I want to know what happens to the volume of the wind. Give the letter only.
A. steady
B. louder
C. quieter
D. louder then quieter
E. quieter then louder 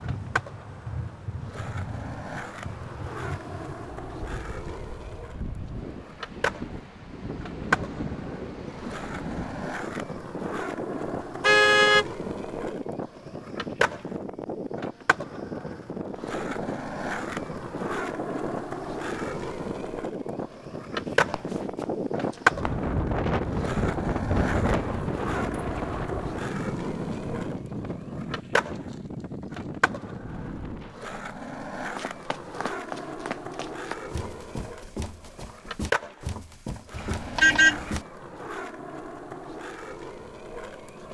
B.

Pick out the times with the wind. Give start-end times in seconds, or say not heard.
0.0-31.0.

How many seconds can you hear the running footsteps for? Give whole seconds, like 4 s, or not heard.
8 s.